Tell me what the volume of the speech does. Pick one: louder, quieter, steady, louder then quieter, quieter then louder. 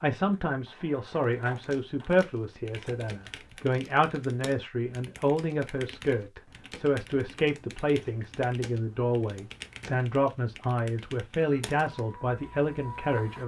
steady.